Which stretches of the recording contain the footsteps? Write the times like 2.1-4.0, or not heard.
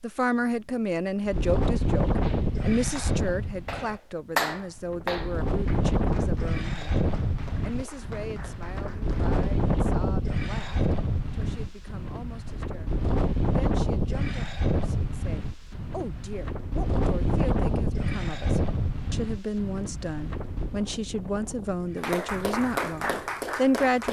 not heard.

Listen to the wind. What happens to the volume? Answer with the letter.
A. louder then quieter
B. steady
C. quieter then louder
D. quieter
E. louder
D.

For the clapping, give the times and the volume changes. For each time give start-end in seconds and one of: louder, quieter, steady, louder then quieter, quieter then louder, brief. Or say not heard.
2.2-9.6 louder then quieter
21.9-24.0 brief.